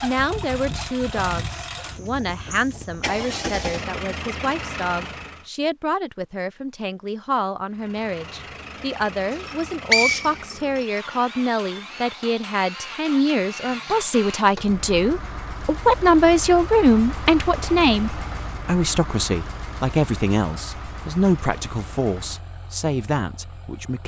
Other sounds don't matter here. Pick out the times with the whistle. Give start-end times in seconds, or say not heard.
9.3-10.8.